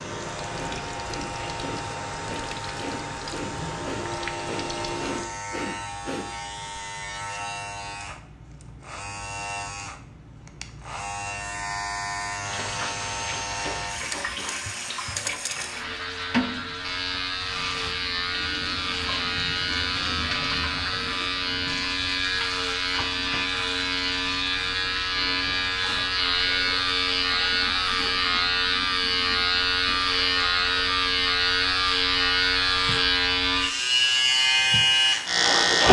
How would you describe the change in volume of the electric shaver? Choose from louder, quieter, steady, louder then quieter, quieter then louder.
louder.